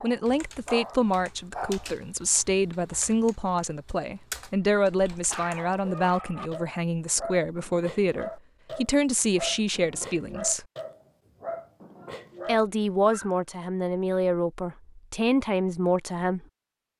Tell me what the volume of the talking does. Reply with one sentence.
The loudness of the talking stays about the same.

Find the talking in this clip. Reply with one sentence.
You can hear the talking from 0.0 to 10.7 s and from 12.4 to 16.4 s.